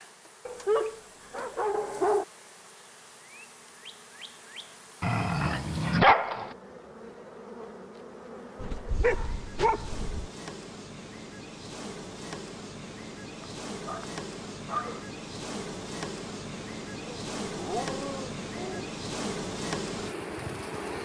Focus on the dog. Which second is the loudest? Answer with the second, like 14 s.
6 s.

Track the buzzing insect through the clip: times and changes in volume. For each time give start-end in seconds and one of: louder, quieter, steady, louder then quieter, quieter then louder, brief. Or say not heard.
0.0-20.9 louder.